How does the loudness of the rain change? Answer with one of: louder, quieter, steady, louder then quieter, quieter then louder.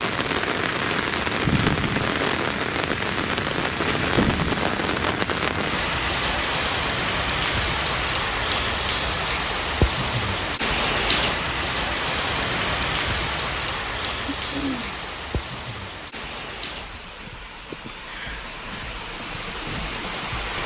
quieter.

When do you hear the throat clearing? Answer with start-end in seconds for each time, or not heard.
14.2-15.1.